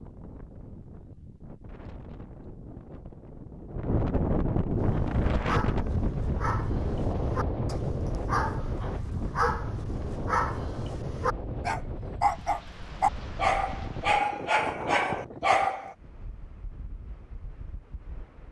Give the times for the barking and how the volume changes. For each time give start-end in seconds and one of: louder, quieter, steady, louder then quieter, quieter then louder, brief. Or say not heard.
4.8-15.9 louder.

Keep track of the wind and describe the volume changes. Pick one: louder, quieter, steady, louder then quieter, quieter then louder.
louder then quieter.